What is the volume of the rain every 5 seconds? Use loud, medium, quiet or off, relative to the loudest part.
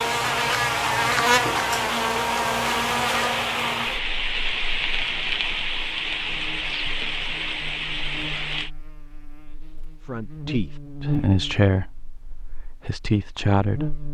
loud, loud, off.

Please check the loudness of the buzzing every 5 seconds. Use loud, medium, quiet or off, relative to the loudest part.
loud, quiet, medium.